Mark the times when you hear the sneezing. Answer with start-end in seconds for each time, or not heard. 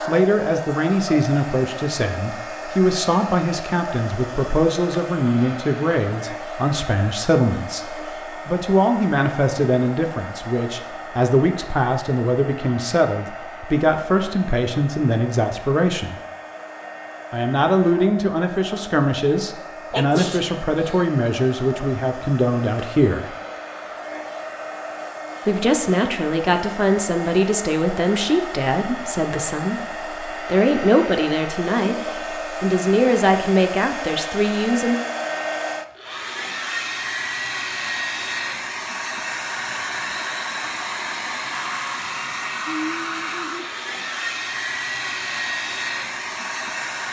19.9-21.1.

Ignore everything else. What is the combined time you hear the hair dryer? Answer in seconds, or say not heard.
47 s.